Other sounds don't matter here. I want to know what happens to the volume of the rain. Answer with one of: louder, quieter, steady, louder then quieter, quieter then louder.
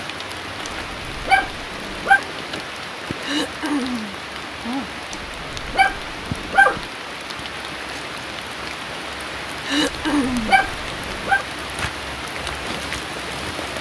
steady.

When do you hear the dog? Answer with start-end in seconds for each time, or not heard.
0.7-2.2, 5.1-6.8, 9.8-11.4.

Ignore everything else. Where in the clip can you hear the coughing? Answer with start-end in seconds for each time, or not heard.
3.2-4.2, 9.7-10.6.